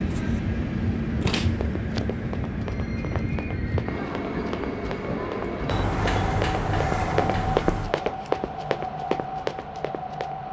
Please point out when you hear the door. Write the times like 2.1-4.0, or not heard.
1.2-2.0, 5.7-8.0.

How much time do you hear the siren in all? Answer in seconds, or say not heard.
not heard.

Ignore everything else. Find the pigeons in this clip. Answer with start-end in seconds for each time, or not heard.
not heard.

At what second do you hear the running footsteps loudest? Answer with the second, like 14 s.
8 s.